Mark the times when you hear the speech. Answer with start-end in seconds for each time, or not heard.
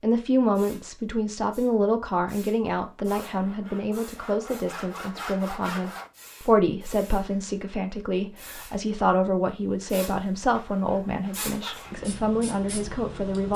0.0-13.5.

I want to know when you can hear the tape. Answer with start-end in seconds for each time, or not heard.
not heard.